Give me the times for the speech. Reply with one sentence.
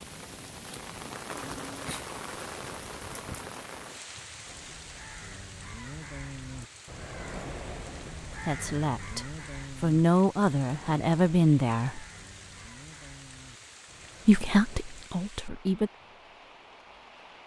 You can hear the speech from 8.4 to 12.0 s and from 14.2 to 15.9 s.